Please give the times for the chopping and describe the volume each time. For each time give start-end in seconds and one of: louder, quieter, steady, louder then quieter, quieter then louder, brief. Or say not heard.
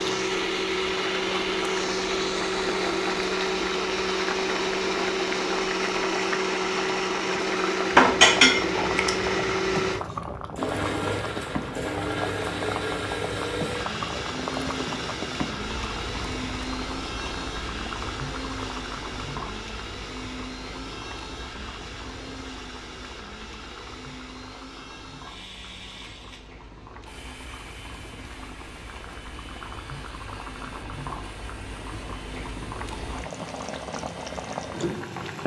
not heard.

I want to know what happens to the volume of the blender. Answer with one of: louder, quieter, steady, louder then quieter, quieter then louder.
quieter.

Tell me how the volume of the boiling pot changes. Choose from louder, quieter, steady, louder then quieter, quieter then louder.
quieter then louder.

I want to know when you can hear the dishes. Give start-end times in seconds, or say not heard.
8.0-9.3.